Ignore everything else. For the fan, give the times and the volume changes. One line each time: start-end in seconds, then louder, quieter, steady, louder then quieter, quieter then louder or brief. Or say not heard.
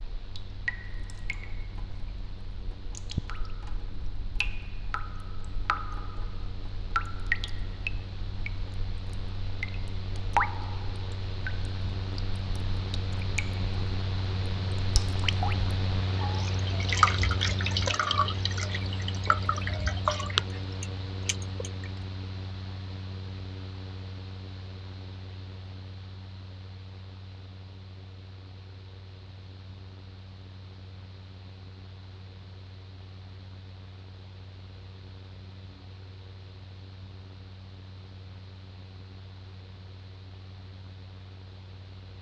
0.0-42.1 louder then quieter.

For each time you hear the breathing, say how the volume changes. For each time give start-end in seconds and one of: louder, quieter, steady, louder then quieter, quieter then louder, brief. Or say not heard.
not heard.